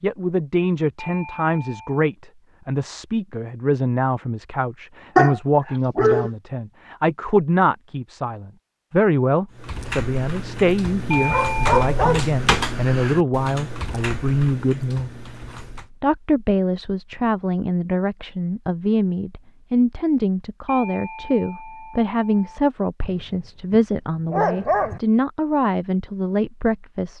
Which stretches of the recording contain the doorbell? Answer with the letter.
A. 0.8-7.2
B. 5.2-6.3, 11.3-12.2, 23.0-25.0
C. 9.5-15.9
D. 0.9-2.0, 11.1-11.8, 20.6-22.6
D.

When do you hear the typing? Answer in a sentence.
You can hear the typing from 9.5 to 15.9 s.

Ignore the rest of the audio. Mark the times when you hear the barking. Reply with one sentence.
You can hear the barking from 5.2 to 6.3 s, from 11.3 to 12.2 s and from 23.0 to 25.0 s.